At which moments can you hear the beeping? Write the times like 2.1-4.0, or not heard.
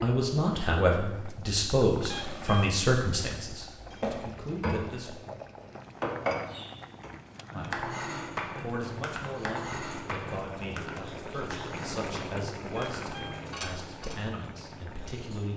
2.1-2.8, 12.8-13.4.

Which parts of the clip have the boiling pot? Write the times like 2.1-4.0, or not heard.
0.0-15.5.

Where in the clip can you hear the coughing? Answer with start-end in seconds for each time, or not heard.
not heard.